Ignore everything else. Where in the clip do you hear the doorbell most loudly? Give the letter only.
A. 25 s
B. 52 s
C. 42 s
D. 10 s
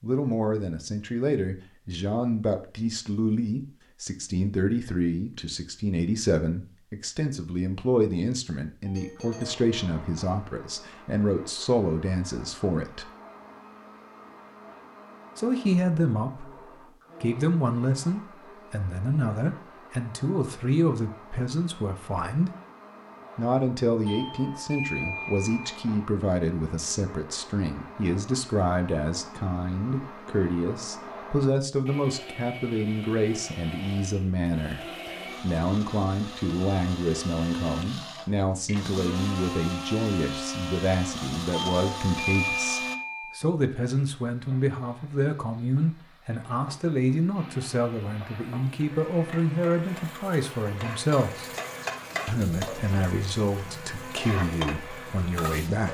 C.